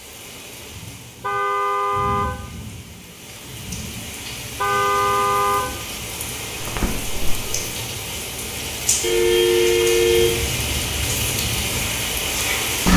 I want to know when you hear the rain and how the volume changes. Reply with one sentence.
The rain can be heard from 0.0 to 12.9 s, getting louder.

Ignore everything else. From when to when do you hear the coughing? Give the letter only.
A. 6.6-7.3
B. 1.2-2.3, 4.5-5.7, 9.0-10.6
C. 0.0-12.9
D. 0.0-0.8
A.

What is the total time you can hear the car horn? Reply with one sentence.
The car horn can be heard for 4 seconds in total.